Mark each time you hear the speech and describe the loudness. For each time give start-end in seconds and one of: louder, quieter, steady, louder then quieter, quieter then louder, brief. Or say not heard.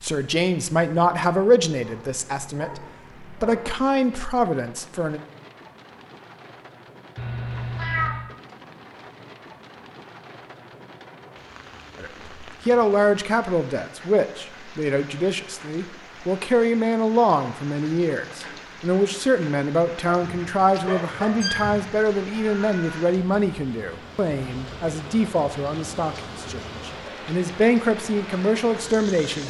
0.0-5.2 quieter then louder
12.0-29.4 steady.